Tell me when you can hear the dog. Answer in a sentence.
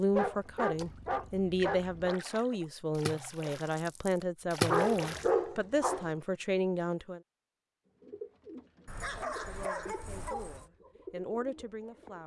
You can hear the dog from 0.1 to 2.2 s, from 4.7 to 6.1 s and from 8.8 to 10.7 s.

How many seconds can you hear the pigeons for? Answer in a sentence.
You can hear the pigeons for 4 seconds altogether.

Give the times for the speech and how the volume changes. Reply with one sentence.
You can hear the speech from 0.0 to 7.2 s, at a steady volume; and briefly from 9.2 to 12.2 s.